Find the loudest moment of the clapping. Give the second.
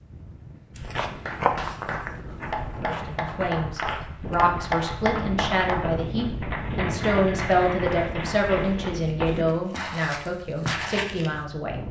5 s.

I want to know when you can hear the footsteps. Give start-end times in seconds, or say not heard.
0.8-11.3.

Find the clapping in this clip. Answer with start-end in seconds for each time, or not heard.
1.2-8.8.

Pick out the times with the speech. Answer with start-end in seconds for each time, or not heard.
2.8-11.8.